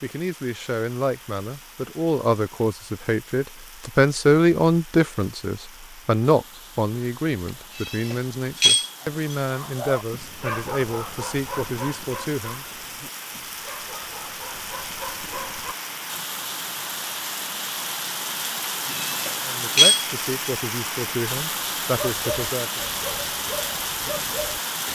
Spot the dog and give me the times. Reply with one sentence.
You can hear the dog from 9.0 to 15.8 s and from 21.9 to 24.6 s.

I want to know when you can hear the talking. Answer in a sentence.
You can hear the talking from 0.0 to 12.7 s and from 19.4 to 22.8 s.